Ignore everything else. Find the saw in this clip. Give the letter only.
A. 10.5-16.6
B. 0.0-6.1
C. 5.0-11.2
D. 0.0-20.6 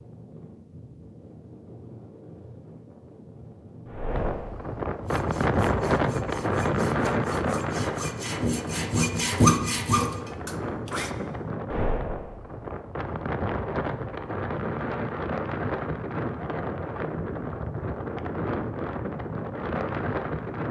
C.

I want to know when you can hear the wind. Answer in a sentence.
You can hear the wind from 0.0 to 20.6 s.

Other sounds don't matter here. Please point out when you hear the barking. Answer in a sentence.
The barking can't be heard in this clip.